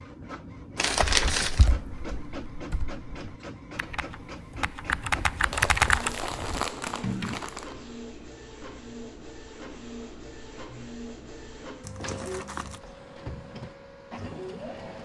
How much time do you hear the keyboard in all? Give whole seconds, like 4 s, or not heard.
6 s.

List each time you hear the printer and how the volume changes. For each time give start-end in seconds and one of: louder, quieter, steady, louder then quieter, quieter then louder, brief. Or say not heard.
0.0-15.0 steady.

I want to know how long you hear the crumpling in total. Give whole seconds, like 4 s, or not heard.
4 s.